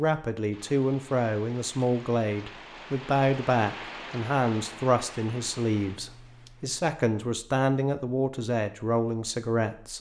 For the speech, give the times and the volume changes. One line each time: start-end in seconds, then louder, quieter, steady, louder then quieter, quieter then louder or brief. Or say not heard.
0.0-9.9 steady.